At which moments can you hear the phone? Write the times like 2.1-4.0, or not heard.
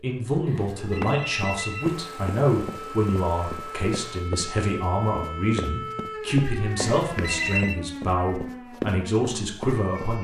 0.5-1.9, 6.8-7.8.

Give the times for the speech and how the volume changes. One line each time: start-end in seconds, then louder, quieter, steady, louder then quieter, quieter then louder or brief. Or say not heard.
0.0-10.1 steady.